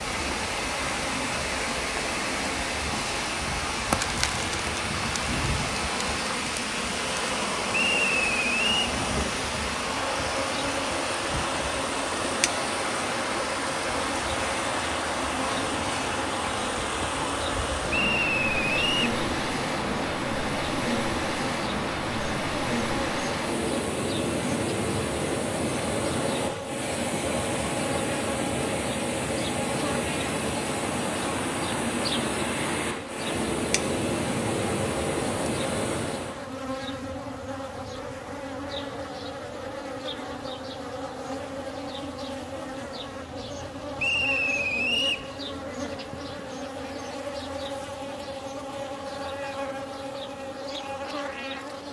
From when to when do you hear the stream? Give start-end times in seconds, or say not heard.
0.0-36.4.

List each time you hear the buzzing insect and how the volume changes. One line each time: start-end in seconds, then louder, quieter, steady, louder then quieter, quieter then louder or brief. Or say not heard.
0.0-51.8 steady.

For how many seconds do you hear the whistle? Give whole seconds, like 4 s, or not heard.
4 s.